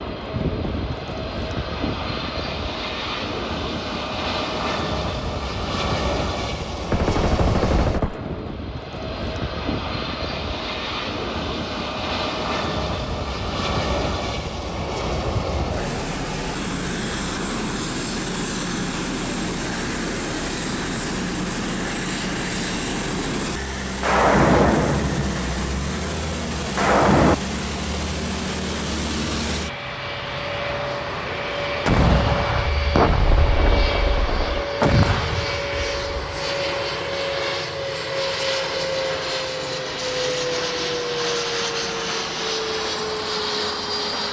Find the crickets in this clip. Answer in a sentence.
The crickets can't be heard in this clip.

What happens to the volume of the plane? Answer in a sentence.
The loudness of the plane stays about the same.